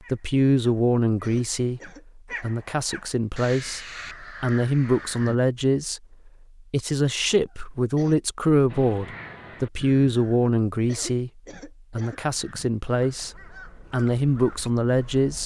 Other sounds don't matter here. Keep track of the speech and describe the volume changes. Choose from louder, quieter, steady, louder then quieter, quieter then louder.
steady.